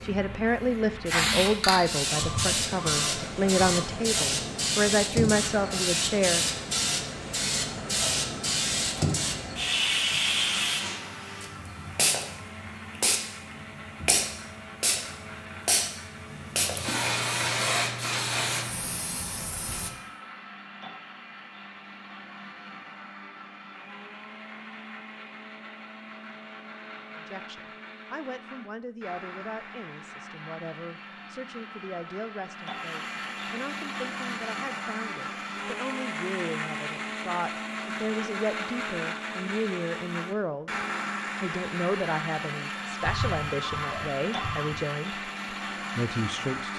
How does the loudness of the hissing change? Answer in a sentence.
The volume of the hissing stays about the same.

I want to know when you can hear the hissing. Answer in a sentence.
You can hear the hissing from 0.0 to 19.9 s.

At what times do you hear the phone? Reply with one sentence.
The phone can be heard from 2.1 to 4.0 s and from 43.0 to 44.8 s.